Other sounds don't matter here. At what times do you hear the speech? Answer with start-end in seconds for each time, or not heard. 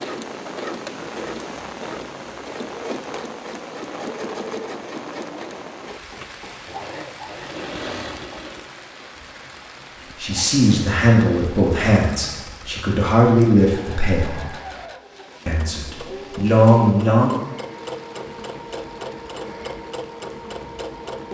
10.2-14.4, 15.4-17.4.